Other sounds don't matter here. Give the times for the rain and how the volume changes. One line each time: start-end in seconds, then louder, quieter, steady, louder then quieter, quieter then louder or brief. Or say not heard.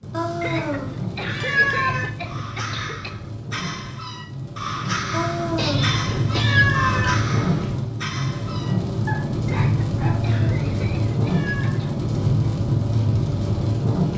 0.0-14.1 louder.